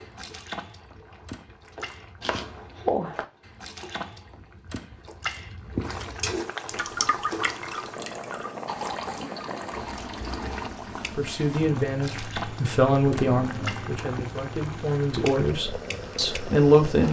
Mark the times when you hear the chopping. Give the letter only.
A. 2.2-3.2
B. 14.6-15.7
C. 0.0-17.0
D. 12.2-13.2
A.